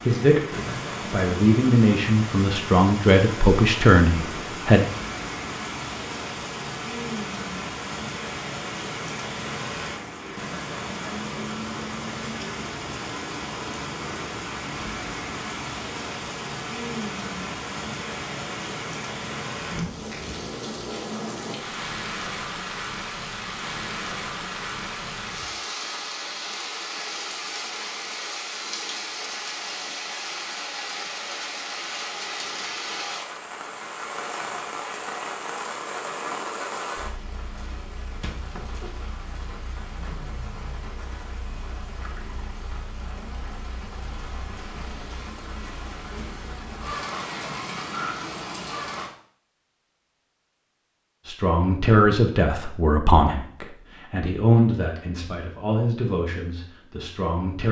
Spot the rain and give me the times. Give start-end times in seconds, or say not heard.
0.0-49.1.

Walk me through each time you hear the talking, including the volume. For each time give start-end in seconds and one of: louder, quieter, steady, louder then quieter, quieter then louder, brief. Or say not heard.
0.1-4.8 louder
51.2-57.6 quieter.